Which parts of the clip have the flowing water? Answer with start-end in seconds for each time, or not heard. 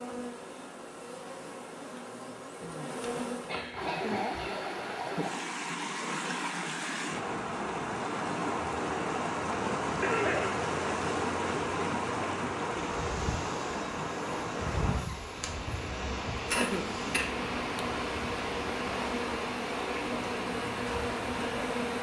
3.7-21.9.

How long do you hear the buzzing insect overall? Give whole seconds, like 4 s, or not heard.
13 s.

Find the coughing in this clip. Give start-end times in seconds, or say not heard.
2.6-4.6, 10.0-10.6, 16.5-17.3.